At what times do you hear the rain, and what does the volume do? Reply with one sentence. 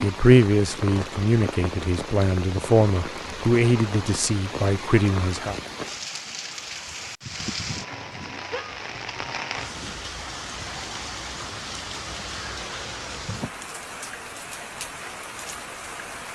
The rain can be heard from 0.0 to 16.3 s, at a steady volume.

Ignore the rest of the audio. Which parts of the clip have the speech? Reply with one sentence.
You can hear the speech from 0.0 to 5.5 s.